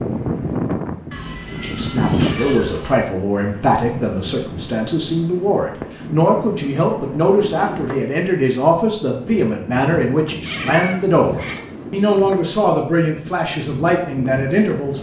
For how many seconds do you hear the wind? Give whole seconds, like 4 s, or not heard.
15 s.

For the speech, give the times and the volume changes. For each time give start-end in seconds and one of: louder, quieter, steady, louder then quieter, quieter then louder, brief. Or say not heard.
1.5-14.9 steady.